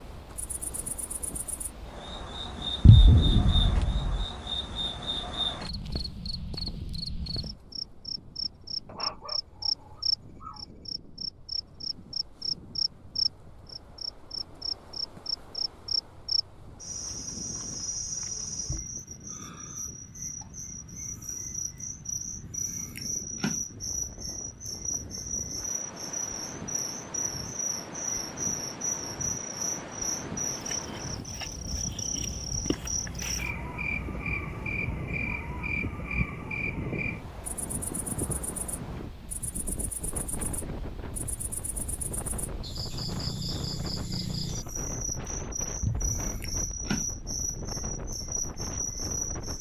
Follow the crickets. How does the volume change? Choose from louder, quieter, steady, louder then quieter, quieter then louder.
steady.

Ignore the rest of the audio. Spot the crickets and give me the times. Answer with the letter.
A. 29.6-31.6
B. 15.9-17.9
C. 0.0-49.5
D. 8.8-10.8
C.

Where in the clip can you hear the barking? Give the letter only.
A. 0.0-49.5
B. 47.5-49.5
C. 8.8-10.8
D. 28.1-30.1
C.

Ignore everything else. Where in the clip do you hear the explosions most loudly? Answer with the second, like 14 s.
3 s.